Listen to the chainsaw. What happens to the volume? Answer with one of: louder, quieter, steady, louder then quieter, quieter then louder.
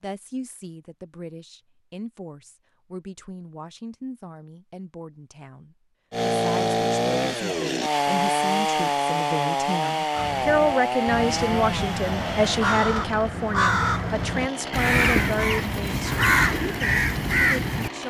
quieter.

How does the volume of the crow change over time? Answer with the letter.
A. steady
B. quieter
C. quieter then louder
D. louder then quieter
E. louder
E.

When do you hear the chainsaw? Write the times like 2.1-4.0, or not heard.
6.1-18.0.